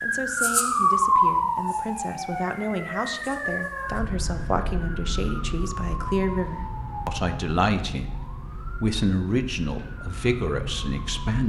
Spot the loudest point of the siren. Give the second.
1 s.